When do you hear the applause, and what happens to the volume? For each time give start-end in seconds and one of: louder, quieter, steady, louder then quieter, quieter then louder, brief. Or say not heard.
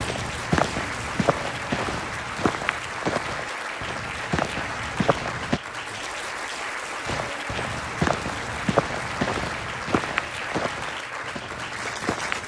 0.0-12.4 steady.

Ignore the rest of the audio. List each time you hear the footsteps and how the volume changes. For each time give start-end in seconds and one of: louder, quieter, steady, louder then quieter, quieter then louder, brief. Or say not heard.
0.0-5.6 quieter then louder
7.0-12.4 quieter.